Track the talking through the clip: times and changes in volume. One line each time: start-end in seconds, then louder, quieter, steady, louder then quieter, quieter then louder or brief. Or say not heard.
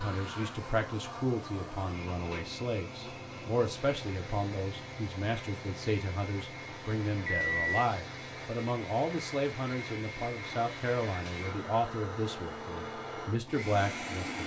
0.0-14.4 steady.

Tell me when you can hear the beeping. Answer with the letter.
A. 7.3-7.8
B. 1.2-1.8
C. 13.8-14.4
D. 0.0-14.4
A.